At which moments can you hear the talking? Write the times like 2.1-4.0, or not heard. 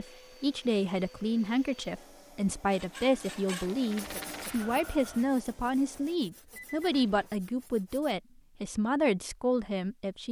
0.0-10.2.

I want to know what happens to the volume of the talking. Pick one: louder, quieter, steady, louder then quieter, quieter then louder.
steady.